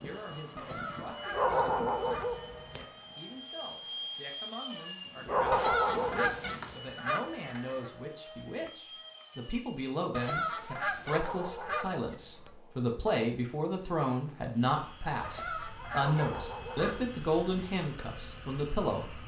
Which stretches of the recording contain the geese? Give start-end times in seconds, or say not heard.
0.6-2.2, 5.5-7.9, 10.1-12.5, 15.2-17.1.